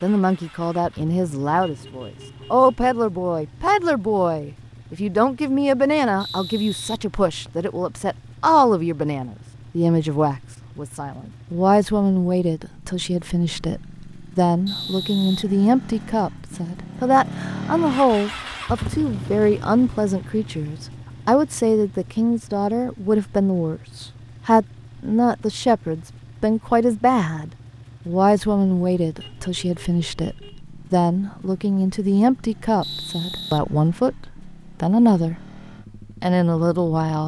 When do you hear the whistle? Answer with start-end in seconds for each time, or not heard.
6.2-7.7, 14.7-16.1, 32.8-34.3.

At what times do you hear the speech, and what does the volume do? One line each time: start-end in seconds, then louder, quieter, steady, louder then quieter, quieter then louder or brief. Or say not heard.
0.0-35.6 steady
36.2-37.2 brief.